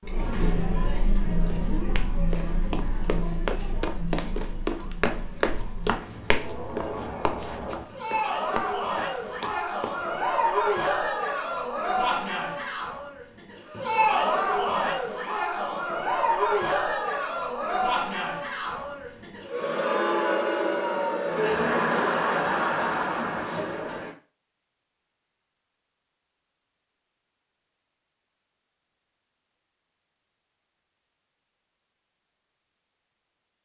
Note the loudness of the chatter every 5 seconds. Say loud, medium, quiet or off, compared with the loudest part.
medium, medium, loud, loud, loud, off, off.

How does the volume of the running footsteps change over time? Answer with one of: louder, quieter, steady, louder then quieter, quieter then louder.
louder then quieter.